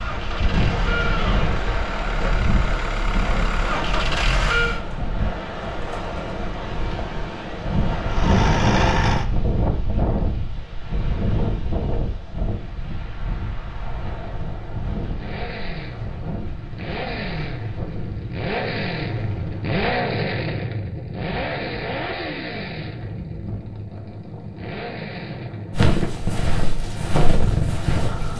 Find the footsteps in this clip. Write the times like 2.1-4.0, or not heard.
25.7-28.3.